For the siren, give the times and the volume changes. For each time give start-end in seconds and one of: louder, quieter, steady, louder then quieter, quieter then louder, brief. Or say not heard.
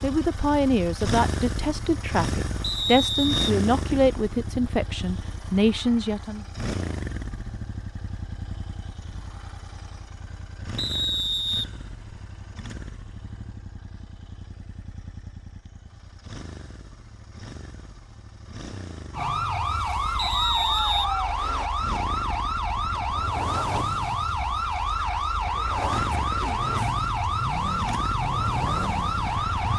19.1-29.7 steady.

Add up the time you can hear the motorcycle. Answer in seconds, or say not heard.
30 s.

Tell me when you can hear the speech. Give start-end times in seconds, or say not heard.
0.0-6.5.